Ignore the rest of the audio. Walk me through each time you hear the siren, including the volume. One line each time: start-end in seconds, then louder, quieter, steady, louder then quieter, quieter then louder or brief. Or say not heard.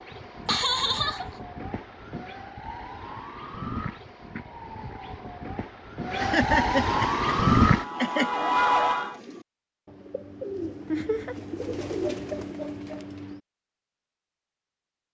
0.0-9.2 louder.